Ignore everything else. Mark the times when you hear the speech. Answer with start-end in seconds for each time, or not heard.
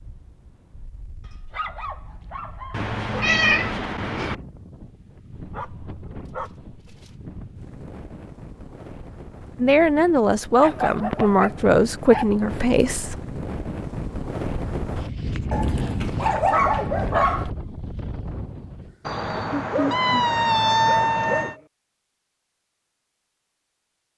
9.6-13.2.